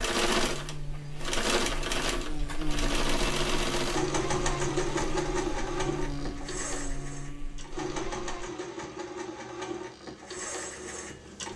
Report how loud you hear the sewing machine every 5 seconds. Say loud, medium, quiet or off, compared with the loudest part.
loud, medium, medium.